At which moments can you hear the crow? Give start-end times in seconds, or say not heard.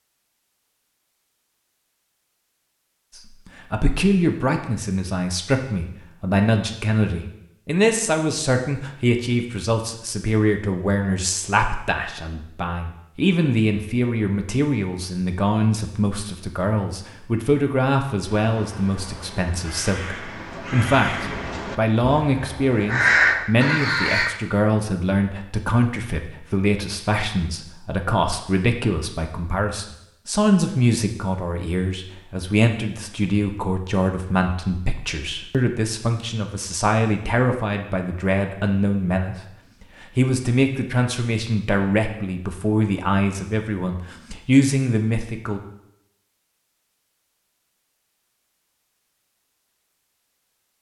18.4-24.3.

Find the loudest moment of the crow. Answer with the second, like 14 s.
23 s.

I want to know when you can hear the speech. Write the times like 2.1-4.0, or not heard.
3.1-45.6.